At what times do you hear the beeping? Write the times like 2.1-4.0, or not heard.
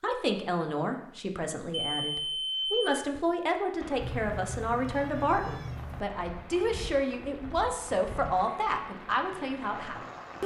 1.9-3.0.